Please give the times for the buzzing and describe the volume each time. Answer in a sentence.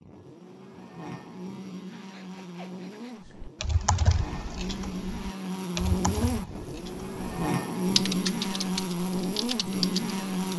You can hear the buzzing from 0.0 to 10.5 s, getting louder.